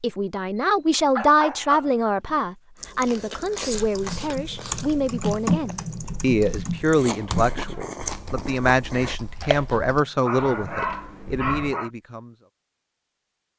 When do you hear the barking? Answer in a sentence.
You can hear the barking from 0.6 to 2.4 s and from 9.7 to 11.9 s.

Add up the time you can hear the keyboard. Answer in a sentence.
You can hear the keyboard for 8 seconds altogether.